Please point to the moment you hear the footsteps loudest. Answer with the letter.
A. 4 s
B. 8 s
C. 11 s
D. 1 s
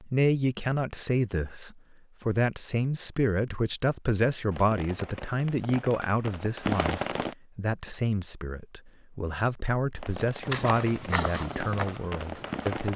C.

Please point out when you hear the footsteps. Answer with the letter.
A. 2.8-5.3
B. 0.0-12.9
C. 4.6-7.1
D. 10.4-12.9
D.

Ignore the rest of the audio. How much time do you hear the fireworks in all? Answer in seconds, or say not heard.
6 s.